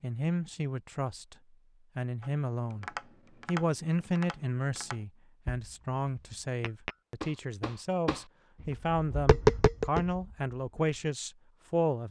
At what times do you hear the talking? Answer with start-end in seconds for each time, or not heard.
0.0-1.4, 1.9-2.9, 3.5-12.0.